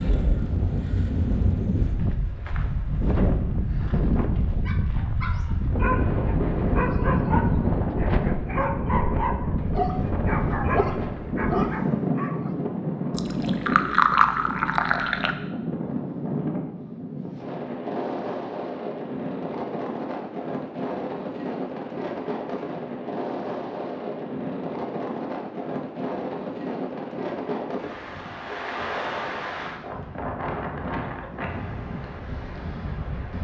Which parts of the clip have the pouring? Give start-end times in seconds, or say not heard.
13.2-15.3.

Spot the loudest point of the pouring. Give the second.
14 s.